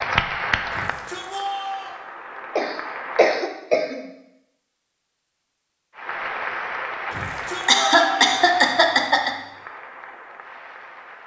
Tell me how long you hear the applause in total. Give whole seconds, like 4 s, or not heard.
9 s.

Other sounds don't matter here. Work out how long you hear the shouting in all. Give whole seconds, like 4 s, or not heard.
3 s.